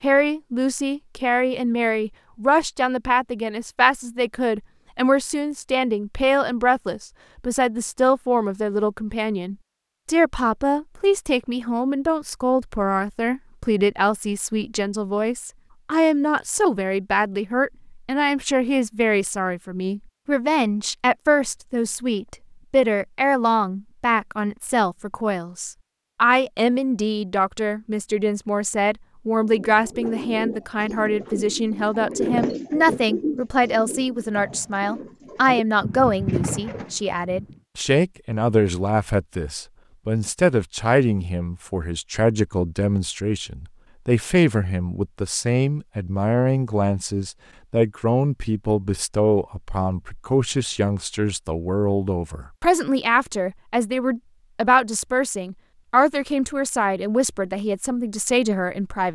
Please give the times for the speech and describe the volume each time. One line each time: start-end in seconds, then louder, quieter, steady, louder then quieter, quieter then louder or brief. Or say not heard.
0.0-59.1 steady.